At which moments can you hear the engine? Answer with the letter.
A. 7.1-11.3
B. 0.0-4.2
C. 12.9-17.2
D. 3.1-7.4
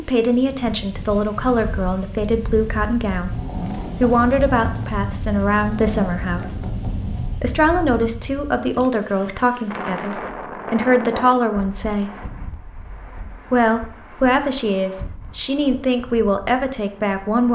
D.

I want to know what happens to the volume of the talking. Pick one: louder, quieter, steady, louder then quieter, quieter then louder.
steady.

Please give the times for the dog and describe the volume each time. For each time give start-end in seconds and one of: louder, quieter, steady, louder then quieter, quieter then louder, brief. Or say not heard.
not heard.